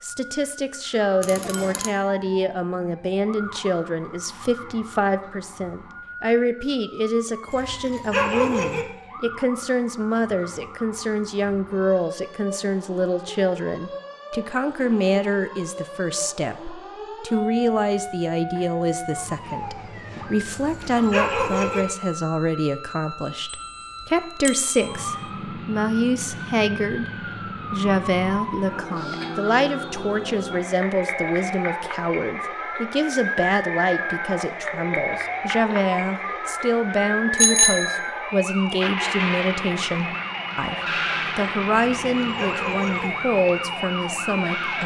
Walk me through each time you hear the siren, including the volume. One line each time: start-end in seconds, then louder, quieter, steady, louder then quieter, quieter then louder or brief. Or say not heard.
0.0-44.8 louder.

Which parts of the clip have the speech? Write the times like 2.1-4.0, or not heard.
0.0-27.1, 27.7-40.8, 41.4-44.8.